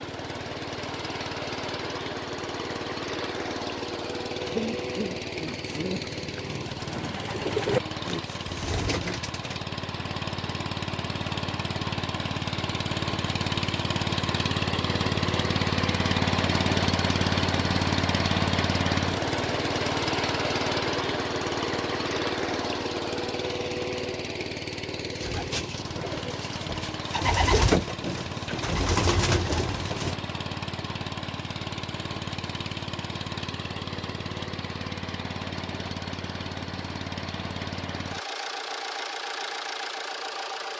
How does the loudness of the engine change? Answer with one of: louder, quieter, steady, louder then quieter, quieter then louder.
louder then quieter.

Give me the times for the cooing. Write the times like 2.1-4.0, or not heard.
4.4-9.6, 25.0-30.2.